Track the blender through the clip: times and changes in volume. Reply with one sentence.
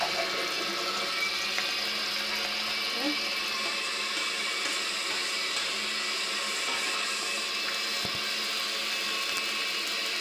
The blender can be heard from 0.0 to 10.1 s, at a steady volume.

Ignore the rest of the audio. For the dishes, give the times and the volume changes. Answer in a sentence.
You can't hear the dishes here.